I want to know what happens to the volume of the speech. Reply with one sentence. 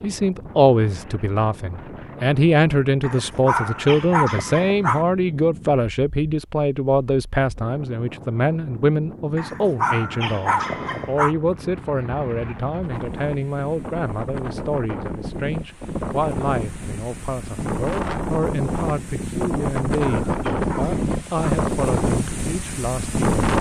The volume of the speech goes down.